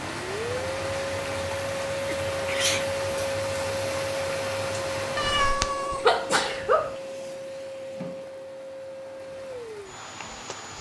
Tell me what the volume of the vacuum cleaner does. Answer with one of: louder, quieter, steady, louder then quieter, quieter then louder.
quieter.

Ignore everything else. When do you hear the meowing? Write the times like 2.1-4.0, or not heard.
5.2-6.0.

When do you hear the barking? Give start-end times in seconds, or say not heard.
not heard.